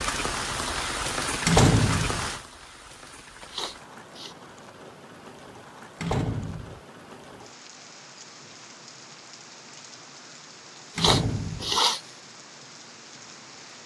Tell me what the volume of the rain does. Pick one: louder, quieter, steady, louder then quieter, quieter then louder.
quieter.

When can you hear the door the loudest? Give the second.
2 s.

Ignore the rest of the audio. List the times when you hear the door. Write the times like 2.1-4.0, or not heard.
1.4-2.2, 6.0-6.8, 10.9-11.8.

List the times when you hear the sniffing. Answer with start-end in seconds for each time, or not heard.
3.5-4.3, 10.9-12.0.